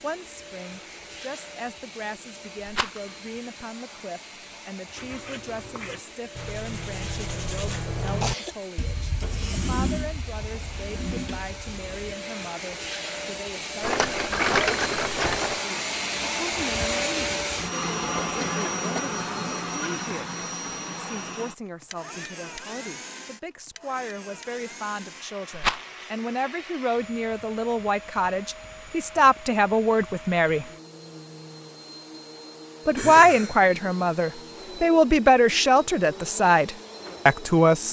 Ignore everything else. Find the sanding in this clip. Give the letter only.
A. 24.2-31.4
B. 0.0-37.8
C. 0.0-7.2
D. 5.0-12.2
D.